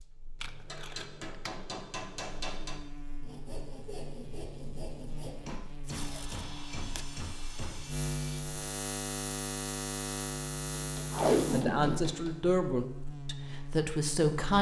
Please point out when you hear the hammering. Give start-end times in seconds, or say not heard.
0.7-2.8, 5.5-8.0, 10.8-12.3.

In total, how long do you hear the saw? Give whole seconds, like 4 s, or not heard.
5 s.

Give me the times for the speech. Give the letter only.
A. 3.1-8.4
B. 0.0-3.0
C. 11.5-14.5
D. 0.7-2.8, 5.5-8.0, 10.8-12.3
C.